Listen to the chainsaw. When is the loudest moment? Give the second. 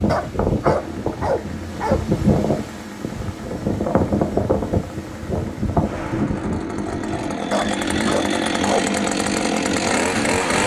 10 s.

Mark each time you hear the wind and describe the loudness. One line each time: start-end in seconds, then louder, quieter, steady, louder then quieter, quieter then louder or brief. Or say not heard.
0.0-10.6 quieter.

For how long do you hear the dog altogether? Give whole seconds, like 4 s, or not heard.
3 s.